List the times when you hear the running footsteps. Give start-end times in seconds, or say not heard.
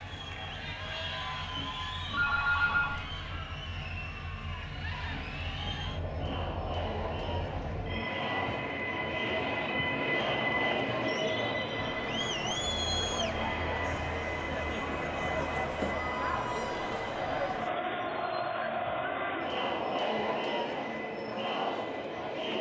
not heard.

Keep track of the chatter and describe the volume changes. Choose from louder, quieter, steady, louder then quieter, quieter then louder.
louder.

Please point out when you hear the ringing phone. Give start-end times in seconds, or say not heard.
2.1-3.2.